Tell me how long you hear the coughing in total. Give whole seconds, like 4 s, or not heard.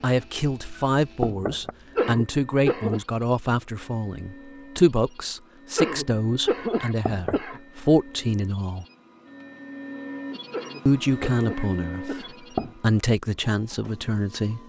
5 s.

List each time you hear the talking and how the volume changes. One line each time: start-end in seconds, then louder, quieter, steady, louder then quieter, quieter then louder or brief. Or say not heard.
0.0-8.8 steady
10.8-12.2 brief
12.8-14.6 brief.